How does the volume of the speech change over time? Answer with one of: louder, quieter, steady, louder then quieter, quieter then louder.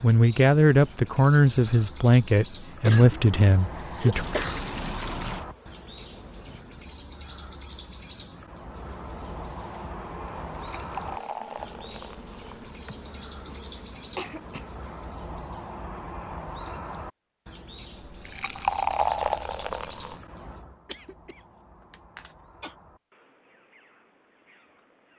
quieter.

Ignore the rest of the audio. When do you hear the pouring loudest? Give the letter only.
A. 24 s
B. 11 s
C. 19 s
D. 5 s
C.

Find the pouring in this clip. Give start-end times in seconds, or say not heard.
4.1-5.5, 10.5-12.8, 18.1-20.1.